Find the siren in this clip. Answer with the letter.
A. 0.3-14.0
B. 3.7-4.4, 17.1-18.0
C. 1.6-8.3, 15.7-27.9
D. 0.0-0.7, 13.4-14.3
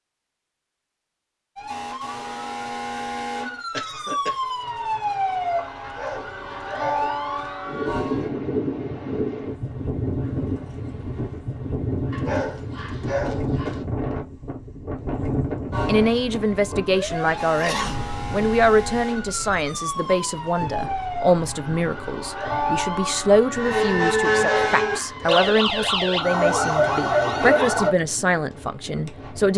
C.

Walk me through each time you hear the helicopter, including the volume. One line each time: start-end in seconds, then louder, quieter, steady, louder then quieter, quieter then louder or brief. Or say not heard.
not heard.